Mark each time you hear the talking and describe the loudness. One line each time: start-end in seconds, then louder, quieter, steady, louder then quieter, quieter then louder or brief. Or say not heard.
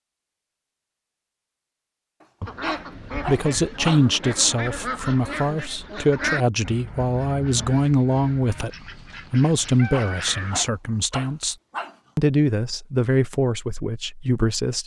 3.2-11.6 steady
12.2-14.8 brief.